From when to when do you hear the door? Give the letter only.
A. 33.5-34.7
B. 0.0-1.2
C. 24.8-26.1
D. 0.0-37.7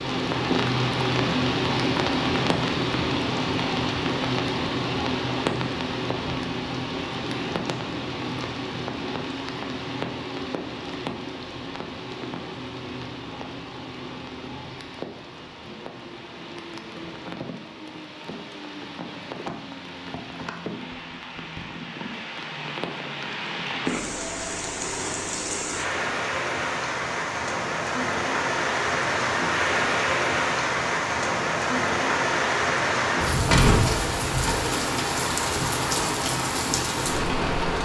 A.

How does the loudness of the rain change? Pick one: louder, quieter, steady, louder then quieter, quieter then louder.
quieter then louder.